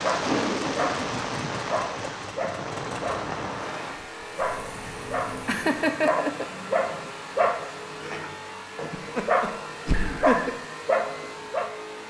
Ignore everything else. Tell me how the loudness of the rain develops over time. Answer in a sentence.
The volume of the rain goes down.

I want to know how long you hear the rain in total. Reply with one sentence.
You can hear the rain for 7 seconds altogether.